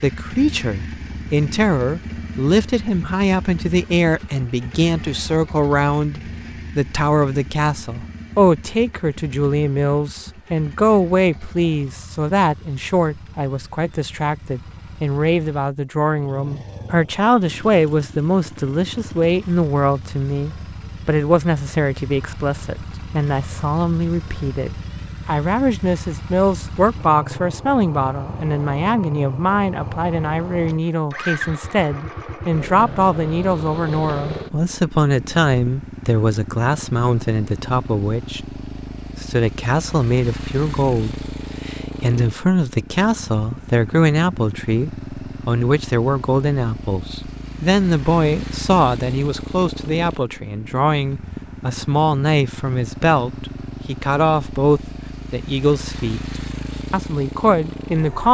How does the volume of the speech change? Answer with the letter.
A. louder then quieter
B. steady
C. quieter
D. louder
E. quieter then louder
B.